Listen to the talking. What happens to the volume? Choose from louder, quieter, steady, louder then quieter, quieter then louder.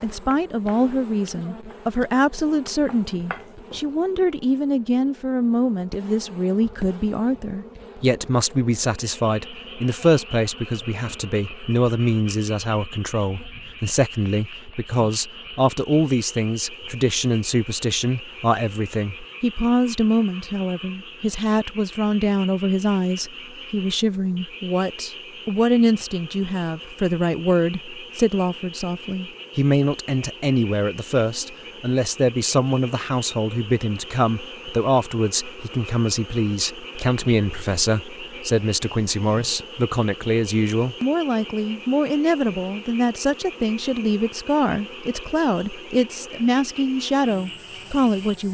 steady.